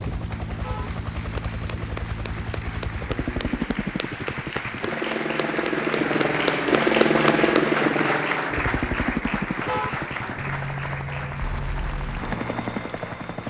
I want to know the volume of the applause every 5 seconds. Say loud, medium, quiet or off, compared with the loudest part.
medium, loud, medium.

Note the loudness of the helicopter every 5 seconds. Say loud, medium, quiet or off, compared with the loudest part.
medium, loud, medium.